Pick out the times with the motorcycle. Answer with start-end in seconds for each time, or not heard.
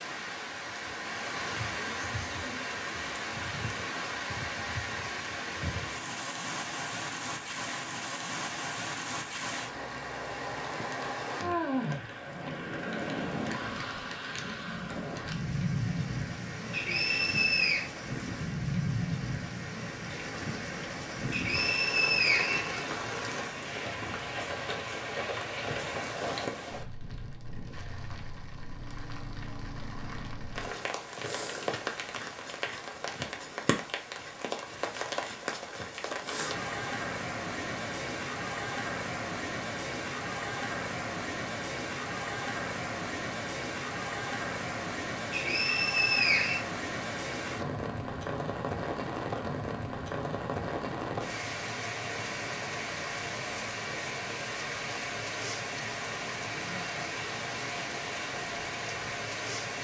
not heard.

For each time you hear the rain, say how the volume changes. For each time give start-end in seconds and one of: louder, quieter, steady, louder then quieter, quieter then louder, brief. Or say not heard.
0.0-59.7 steady.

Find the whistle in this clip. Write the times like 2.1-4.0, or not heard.
16.7-17.9, 21.3-23.3, 45.3-46.6.